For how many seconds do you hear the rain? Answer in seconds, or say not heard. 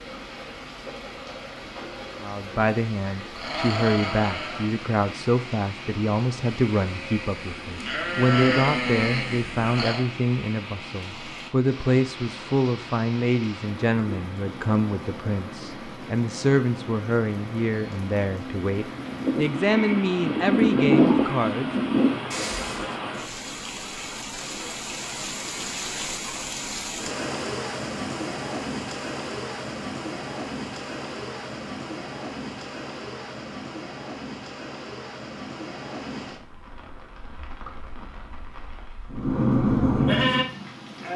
41 s.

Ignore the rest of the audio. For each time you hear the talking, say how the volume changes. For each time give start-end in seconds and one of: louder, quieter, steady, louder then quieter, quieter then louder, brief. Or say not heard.
2.2-21.7 steady.